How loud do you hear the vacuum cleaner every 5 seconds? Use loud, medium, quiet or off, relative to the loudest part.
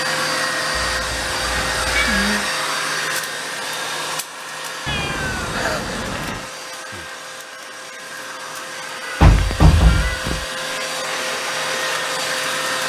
loud, medium, loud.